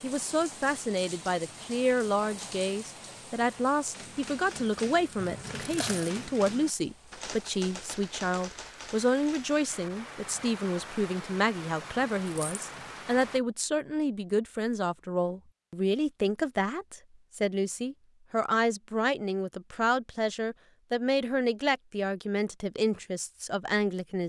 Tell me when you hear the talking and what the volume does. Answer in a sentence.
The talking can be heard from 0.0 to 24.2 s, at a steady volume.